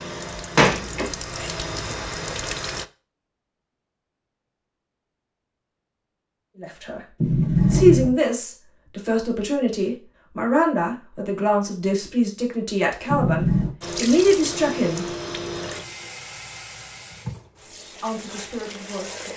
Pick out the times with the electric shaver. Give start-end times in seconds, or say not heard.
not heard.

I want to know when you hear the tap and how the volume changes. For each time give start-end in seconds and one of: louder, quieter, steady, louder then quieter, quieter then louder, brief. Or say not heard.
0.0-2.9 brief
13.8-19.3 quieter.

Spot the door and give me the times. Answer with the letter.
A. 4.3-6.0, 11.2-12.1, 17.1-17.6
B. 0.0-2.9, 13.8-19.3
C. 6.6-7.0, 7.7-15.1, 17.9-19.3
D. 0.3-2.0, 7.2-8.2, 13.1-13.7
D.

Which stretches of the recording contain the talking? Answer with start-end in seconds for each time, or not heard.
6.6-7.0, 7.7-15.1, 17.9-19.3.